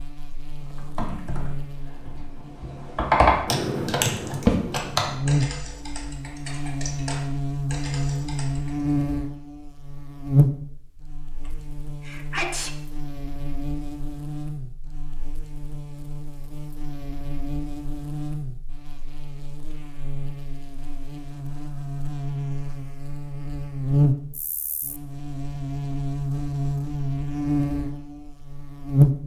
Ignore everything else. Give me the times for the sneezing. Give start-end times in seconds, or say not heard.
11.4-12.7.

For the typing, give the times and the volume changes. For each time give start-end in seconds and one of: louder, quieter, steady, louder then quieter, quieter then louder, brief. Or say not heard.
0.6-8.8 louder then quieter.